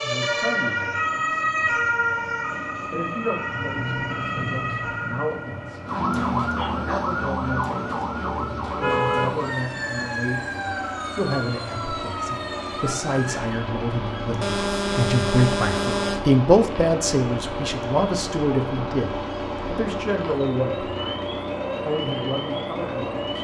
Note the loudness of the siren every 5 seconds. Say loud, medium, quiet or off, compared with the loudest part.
loud, loud, medium, quiet, medium.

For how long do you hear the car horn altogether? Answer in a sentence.
You can hear the car horn for 3 seconds altogether.